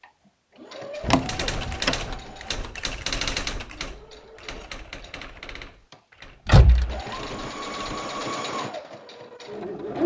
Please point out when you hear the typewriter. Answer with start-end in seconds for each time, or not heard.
1.1-8.1.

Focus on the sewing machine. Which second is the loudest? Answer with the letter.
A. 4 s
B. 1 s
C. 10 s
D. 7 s
C.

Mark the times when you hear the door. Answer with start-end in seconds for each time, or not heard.
1.0-2.0, 6.5-7.0.